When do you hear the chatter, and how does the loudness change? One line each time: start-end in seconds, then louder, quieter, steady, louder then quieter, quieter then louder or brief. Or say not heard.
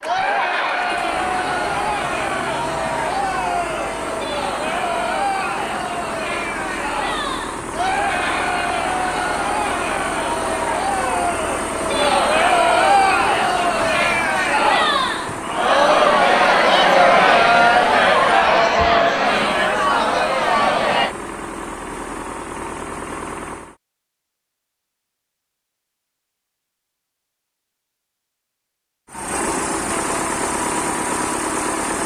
0.0-21.1 louder.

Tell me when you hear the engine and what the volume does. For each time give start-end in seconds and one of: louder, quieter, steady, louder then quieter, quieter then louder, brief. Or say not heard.
0.0-23.8 steady
29.1-32.0 brief.